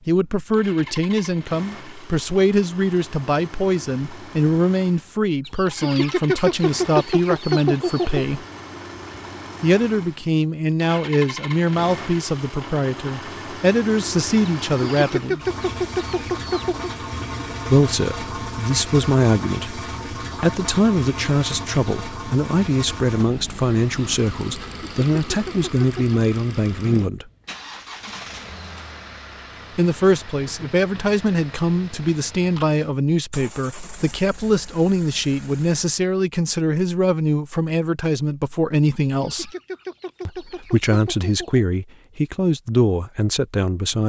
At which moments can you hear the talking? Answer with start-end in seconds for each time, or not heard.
0.1-8.4, 9.6-15.4, 17.6-27.2, 29.8-39.5, 40.2-44.0.